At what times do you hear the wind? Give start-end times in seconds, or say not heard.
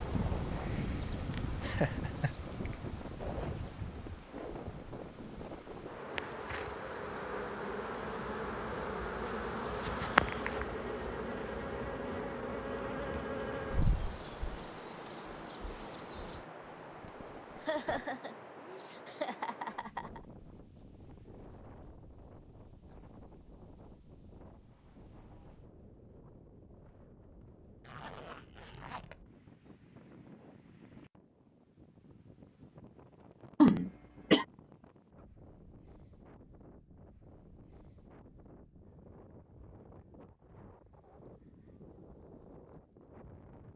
0.0-43.7.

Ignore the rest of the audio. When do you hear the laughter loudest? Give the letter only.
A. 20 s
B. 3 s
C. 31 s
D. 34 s
D.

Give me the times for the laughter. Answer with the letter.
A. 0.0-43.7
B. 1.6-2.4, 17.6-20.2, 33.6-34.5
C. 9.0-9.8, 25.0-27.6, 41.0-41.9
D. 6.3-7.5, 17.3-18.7
B.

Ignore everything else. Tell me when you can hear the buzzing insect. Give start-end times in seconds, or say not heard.
0.0-16.4.